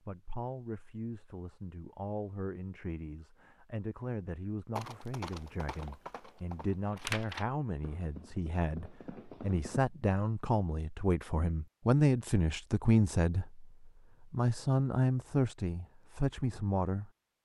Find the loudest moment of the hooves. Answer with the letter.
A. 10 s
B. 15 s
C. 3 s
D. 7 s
D.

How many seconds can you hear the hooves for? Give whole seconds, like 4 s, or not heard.
5 s.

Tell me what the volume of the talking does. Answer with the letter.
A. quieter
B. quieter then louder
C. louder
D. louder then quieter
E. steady
C.